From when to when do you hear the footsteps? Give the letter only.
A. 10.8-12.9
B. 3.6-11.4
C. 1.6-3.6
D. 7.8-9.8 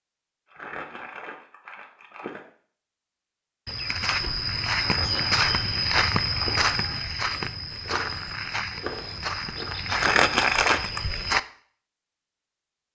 B.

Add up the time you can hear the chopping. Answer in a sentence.
The chopping can be heard for 2 seconds in total.